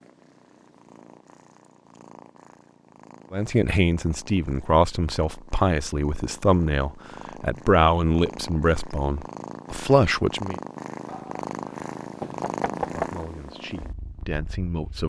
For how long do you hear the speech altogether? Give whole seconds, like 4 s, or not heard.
9 s.